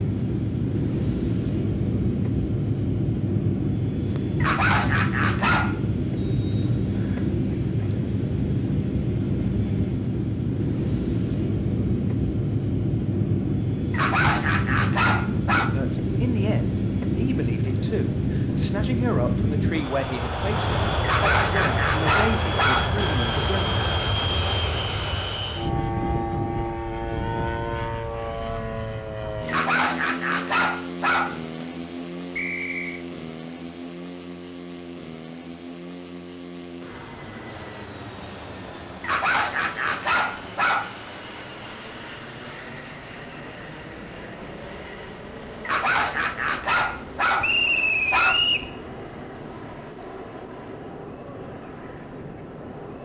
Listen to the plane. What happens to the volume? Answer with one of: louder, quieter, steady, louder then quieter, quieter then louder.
quieter.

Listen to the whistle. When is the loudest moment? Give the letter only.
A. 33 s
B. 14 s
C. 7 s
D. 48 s
D.